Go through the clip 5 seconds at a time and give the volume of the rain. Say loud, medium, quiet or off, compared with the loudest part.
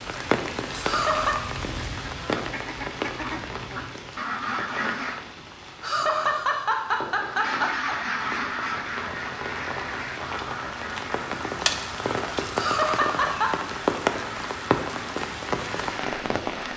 loud, medium, loud, loud.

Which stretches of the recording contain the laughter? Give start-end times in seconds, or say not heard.
0.8-1.4, 5.8-8.0, 12.6-13.6.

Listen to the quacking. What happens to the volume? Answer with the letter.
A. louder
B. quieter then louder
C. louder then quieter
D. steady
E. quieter
C.